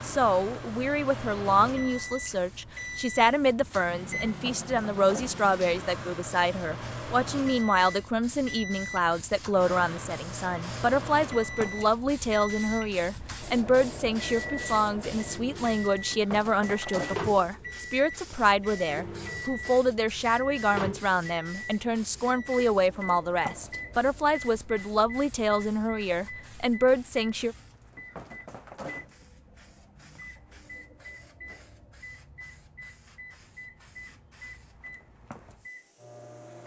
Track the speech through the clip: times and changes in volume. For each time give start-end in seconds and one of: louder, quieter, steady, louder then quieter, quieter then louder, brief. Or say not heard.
0.0-27.6 steady.